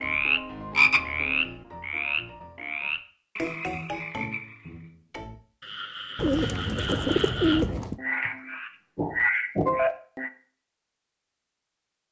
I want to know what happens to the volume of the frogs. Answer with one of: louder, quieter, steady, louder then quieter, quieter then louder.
quieter then louder.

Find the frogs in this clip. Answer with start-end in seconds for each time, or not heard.
0.0-10.3.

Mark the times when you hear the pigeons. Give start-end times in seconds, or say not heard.
6.2-8.0.